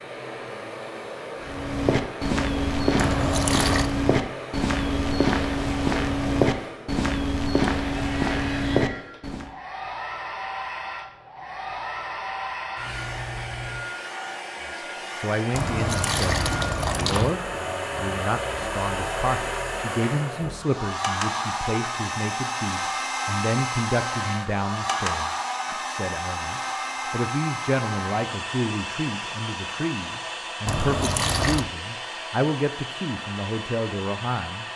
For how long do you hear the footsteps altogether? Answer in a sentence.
You can hear the footsteps for 8 seconds altogether.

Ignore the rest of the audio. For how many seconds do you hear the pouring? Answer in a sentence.
The pouring can be heard for 4 seconds in total.